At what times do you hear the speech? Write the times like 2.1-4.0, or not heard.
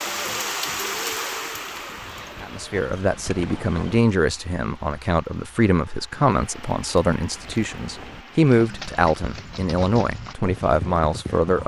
2.4-11.6.